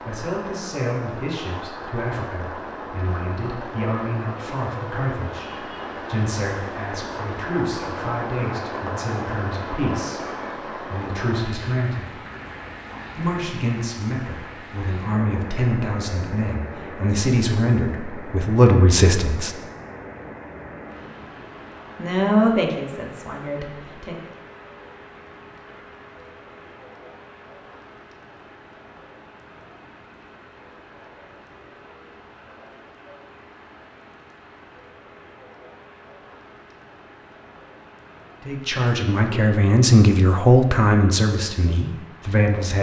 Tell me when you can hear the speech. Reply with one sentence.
You can hear the speech from 0.1 to 12.2 s, from 13.2 to 19.5 s, from 21.9 to 24.1 s and from 38.5 to 42.7 s.